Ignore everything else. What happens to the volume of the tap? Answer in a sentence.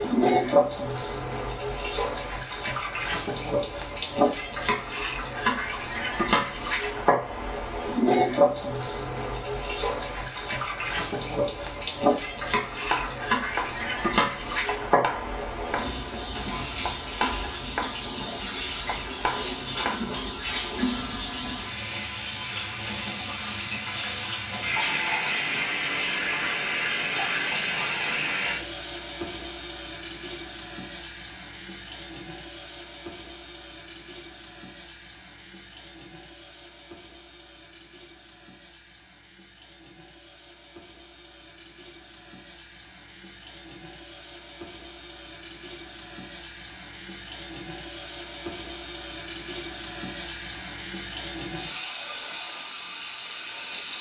The loudness of the tap goes down, then up.